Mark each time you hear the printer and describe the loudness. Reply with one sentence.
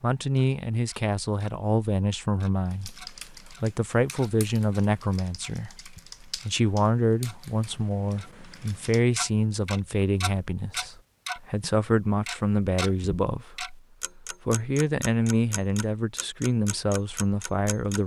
You can't hear the printer here.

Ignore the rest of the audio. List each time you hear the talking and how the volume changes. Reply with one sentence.
The talking can be heard from 0.0 to 18.0 s, at a steady volume.